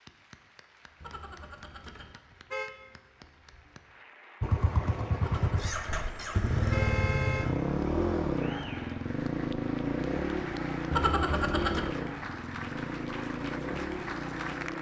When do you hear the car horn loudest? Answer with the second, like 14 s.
11 s.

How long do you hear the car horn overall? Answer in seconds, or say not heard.
5 s.